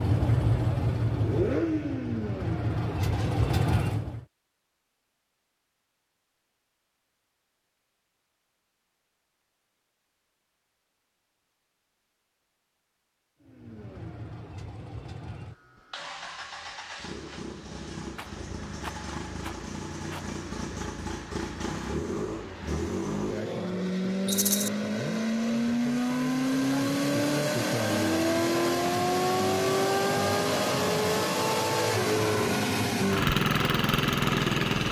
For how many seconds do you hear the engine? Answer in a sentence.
You can hear the engine for 26 seconds altogether.